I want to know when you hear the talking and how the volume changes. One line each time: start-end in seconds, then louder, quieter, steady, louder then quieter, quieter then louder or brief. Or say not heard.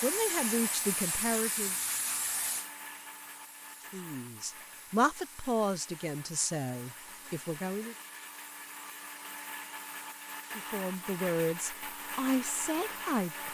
0.0-1.8 brief
3.9-8.0 louder then quieter
10.5-13.4 brief.